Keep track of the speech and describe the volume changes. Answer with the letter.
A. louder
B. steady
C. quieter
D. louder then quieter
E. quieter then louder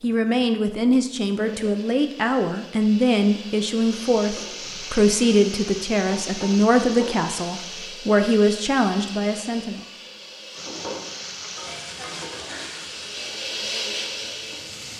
B.